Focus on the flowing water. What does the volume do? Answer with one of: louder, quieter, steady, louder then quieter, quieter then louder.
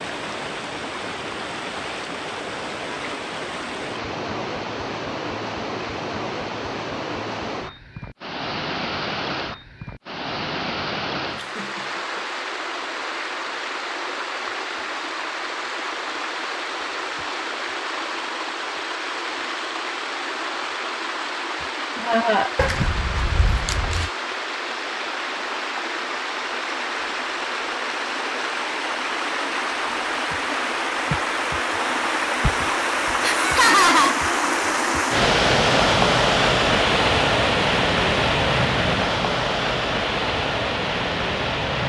louder.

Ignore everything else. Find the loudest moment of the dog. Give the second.
23 s.